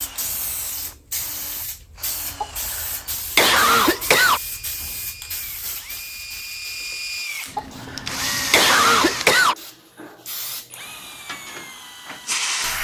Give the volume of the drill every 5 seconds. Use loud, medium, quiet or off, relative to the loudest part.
medium, loud, medium.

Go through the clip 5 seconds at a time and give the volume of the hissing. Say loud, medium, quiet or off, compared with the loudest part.
medium, medium, loud.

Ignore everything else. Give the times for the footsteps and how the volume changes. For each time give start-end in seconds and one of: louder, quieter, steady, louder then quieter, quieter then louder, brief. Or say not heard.
not heard.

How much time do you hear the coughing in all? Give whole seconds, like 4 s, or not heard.
4 s.